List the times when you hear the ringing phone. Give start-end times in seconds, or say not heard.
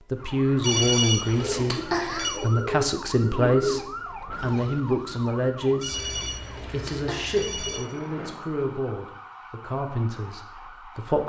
0.6-2.4, 5.8-7.8.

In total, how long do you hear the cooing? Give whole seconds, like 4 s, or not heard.
5 s.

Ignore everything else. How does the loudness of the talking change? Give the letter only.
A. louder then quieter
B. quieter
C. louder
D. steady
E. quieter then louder
B.